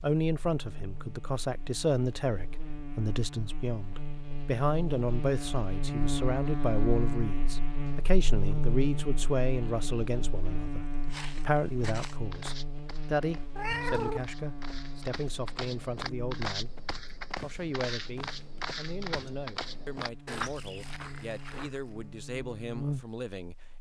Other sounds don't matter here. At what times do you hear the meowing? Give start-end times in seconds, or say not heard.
13.6-14.2.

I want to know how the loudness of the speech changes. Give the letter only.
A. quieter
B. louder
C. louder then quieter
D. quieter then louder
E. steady
A.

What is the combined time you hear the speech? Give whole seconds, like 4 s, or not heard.
23 s.